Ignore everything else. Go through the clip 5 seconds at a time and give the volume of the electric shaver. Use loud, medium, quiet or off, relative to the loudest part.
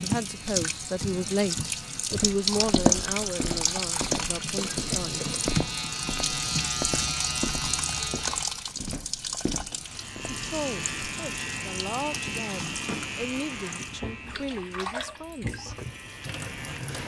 medium, loud, loud, medium.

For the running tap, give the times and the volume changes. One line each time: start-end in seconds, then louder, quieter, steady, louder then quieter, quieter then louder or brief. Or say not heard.
0.0-17.0 quieter.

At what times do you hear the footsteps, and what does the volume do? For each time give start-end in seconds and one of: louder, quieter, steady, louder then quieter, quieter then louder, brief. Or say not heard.
2.1-10.3 quieter.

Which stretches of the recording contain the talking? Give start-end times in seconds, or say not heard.
0.0-5.3, 10.3-15.8.